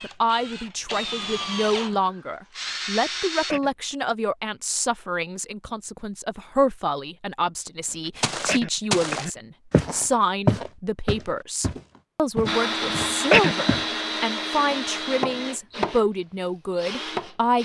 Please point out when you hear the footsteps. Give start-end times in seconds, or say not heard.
8.2-13.8.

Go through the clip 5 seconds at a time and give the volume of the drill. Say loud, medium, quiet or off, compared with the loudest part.
medium, off, loud, loud.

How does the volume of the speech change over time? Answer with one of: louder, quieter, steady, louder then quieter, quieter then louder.
steady.